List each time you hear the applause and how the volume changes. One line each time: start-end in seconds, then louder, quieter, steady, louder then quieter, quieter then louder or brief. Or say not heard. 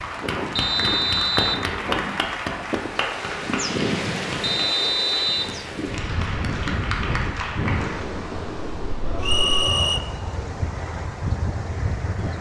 0.0-8.3 quieter then louder.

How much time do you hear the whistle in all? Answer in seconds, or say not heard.
3 s.